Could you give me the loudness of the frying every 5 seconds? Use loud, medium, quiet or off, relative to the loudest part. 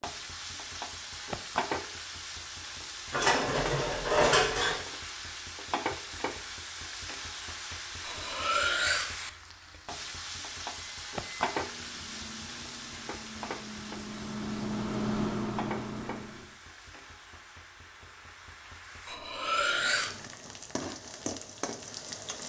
loud, loud, loud, medium, loud.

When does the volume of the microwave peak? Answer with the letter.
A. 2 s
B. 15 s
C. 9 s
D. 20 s
B.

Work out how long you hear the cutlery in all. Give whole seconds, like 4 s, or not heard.
4 s.